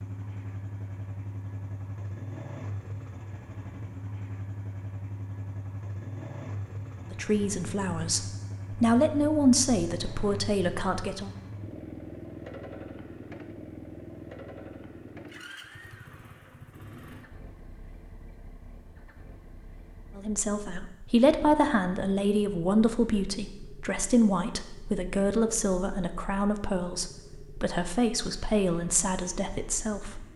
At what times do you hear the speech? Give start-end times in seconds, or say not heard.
7.1-11.3, 20.1-30.2.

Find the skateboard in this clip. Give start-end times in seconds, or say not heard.
not heard.